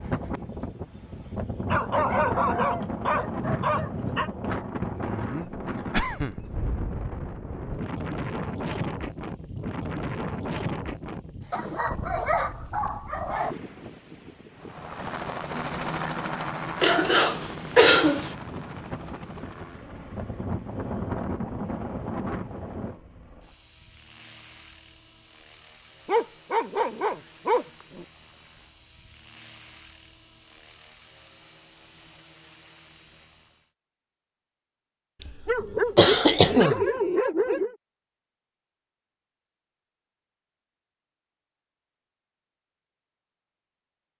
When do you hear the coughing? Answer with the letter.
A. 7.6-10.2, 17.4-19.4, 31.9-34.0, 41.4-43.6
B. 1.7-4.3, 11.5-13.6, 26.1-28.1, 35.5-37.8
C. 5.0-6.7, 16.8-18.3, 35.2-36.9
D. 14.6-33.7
C.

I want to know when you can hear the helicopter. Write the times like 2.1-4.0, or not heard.
14.6-33.7.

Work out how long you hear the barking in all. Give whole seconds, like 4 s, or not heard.
9 s.